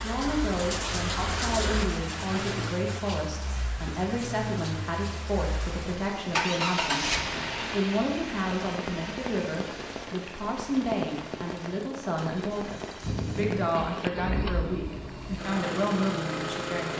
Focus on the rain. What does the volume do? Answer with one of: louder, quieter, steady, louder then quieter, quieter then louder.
quieter.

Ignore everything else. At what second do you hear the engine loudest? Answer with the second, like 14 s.
7 s.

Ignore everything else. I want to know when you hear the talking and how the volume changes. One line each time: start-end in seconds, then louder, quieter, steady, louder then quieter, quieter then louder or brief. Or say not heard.
0.0-16.9 steady.